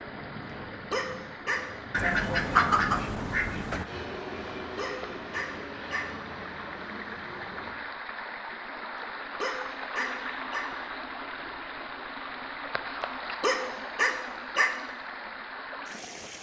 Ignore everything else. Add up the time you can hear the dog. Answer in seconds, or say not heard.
5 s.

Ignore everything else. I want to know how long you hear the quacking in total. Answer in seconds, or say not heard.
2 s.